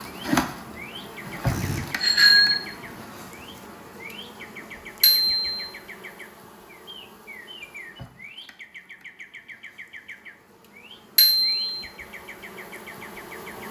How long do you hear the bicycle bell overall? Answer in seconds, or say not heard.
2 s.